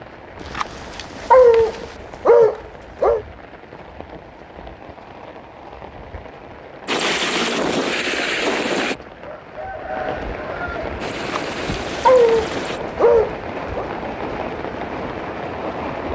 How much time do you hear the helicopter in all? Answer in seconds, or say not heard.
4 s.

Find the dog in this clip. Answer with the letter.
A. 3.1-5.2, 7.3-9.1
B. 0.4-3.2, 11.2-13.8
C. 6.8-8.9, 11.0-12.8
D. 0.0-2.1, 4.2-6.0
B.